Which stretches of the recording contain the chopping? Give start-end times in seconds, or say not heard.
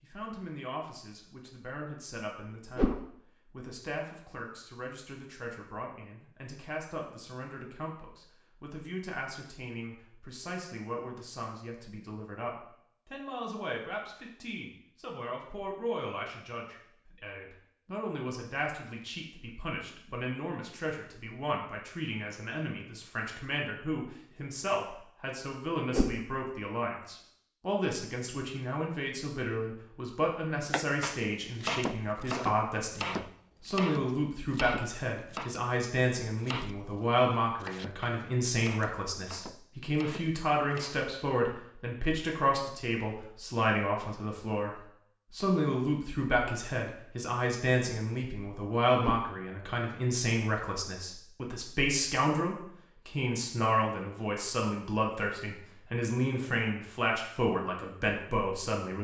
30.6-41.1.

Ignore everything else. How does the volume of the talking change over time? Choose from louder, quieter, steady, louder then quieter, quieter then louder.
louder.